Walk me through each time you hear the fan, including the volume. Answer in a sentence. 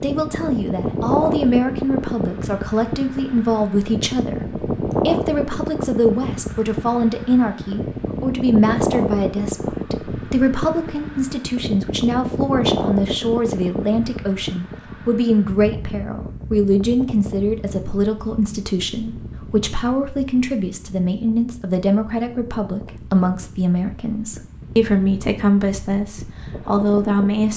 The fan can be heard from 0.0 to 27.5 s, getting quieter.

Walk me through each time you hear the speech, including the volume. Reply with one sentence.
You can hear the speech from 0.0 to 27.5 s, at a steady volume.